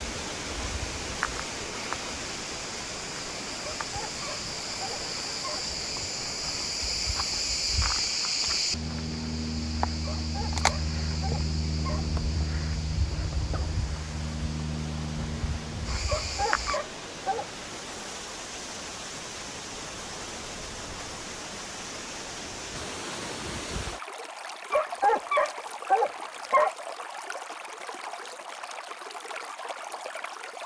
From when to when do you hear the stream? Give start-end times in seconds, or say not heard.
0.0-30.6.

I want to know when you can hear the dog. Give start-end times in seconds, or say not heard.
3.6-5.6, 10.0-12.1, 16.1-17.4, 24.7-26.7.